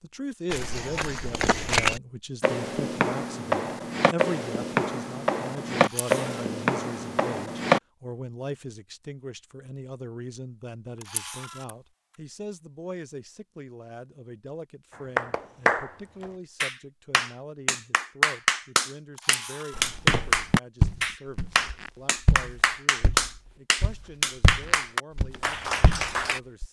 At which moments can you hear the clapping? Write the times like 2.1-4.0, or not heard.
15.2-26.4.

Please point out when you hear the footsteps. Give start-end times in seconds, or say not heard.
0.5-7.8, 19.8-26.6.